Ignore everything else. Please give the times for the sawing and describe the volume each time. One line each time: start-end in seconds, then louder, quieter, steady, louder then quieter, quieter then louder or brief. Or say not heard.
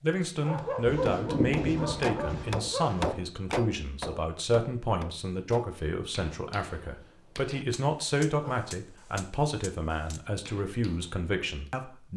not heard.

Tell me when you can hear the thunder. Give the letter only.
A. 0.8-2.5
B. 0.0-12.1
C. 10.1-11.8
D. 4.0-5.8
A.